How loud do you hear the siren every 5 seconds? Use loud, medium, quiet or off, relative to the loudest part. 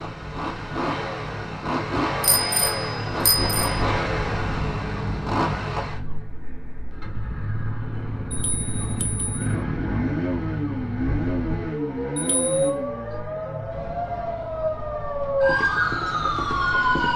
quiet, quiet, medium, loud.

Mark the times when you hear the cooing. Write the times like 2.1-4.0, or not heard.
not heard.